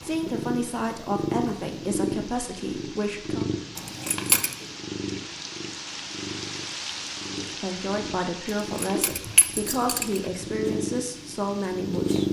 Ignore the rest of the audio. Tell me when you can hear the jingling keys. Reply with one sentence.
The jingling keys can be heard from 3.8 to 4.5 s and from 8.8 to 10.2 s.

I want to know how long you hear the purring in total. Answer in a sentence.
The purring can be heard for 12 seconds in total.